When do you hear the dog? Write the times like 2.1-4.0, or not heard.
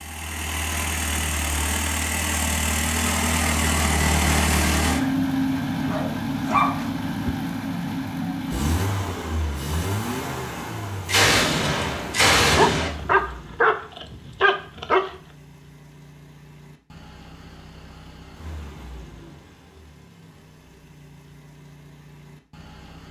5.8-7.3, 12.6-15.1.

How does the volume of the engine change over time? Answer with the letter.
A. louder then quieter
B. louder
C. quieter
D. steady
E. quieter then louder
C.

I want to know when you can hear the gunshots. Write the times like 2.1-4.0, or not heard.
11.1-12.9.